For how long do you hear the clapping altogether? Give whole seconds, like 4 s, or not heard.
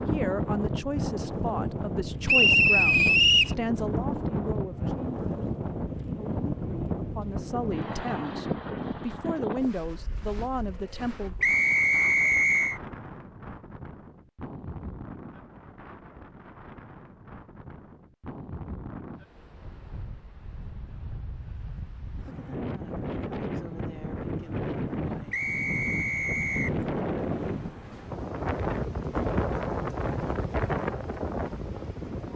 not heard.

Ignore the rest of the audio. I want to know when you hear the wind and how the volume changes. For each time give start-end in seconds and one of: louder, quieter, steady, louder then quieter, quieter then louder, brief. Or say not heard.
0.0-32.3 quieter then louder.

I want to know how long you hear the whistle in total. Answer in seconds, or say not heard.
4 s.